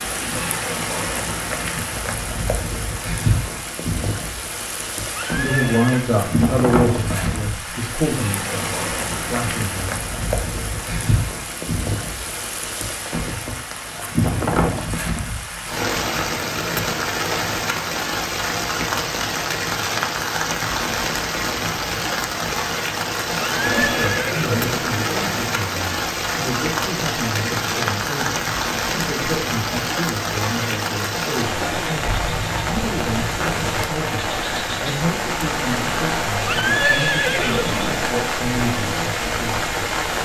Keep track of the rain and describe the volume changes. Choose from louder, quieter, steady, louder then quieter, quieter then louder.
steady.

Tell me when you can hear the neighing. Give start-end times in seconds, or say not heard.
5.2-6.0, 23.4-24.6, 36.5-38.0.